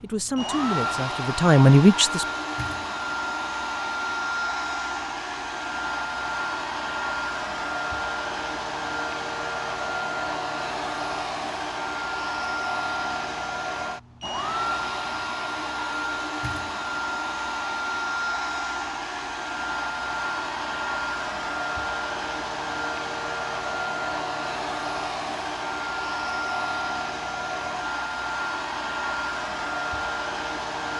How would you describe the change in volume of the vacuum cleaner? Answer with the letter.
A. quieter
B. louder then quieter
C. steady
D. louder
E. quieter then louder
C.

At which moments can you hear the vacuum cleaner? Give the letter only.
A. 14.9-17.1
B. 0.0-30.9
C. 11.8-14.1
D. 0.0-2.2
B.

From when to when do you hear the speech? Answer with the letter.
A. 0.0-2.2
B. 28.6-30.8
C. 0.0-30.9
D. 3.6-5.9
A.